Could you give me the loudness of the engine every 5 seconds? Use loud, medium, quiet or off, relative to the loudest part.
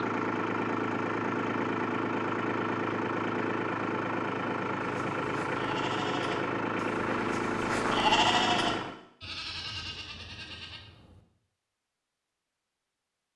loud, loud, off.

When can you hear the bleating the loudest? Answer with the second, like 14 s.
8 s.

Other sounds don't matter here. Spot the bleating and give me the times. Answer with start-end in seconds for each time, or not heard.
4.9-10.8.